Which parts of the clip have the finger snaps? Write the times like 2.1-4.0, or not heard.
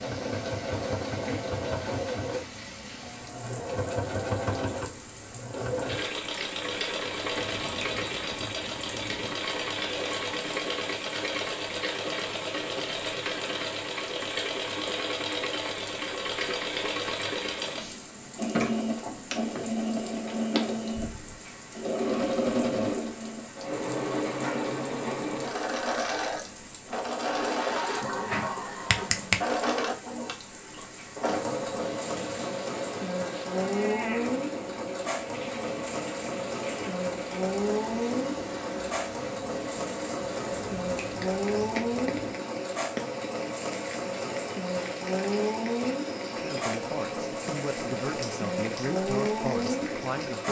7.5-9.3, 28.0-29.4, 40.6-42.4.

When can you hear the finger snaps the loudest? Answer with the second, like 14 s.
29 s.